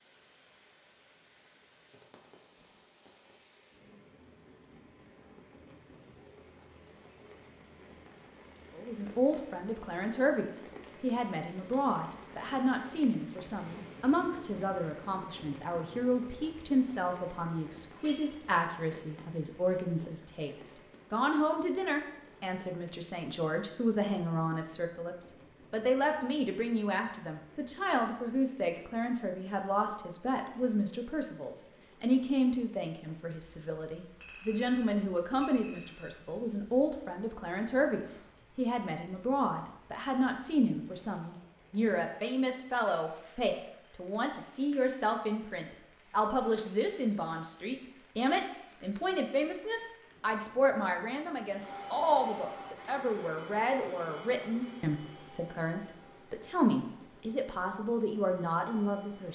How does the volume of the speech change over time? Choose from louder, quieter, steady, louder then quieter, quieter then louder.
steady.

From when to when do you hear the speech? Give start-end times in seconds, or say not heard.
8.8-59.3.